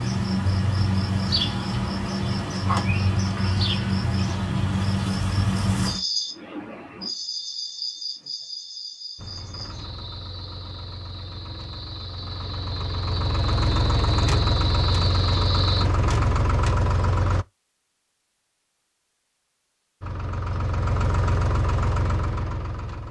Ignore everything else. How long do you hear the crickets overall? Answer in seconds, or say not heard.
16 s.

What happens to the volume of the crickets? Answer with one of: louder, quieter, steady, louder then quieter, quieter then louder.
quieter then louder.